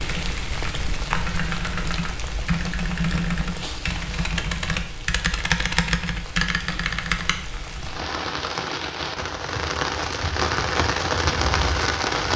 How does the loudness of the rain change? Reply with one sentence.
The loudness of the rain goes down, then up.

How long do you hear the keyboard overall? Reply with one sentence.
The keyboard can be heard for 7 seconds in total.